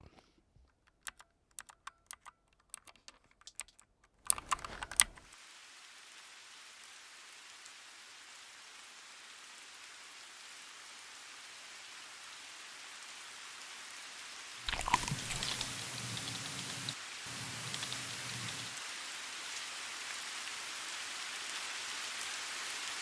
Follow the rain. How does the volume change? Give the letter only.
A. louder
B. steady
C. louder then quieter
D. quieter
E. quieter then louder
A.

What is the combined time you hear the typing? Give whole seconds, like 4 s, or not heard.
9 s.